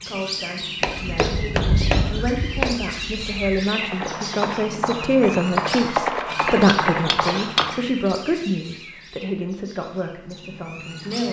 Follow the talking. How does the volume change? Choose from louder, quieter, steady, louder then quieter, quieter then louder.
louder then quieter.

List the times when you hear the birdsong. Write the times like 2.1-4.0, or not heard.
0.0-11.2.